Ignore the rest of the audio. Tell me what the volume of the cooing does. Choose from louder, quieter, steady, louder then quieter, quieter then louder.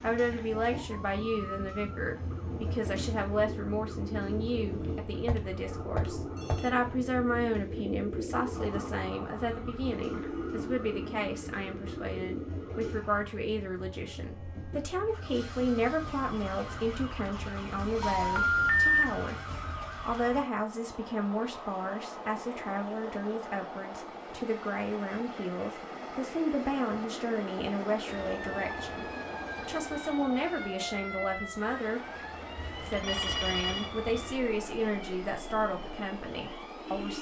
steady.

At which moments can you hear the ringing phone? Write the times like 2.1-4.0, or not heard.
4.8-6.7, 18.0-19.1, 32.5-33.9.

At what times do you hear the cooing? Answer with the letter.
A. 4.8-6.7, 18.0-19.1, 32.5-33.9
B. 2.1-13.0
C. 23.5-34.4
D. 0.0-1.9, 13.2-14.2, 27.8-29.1
B.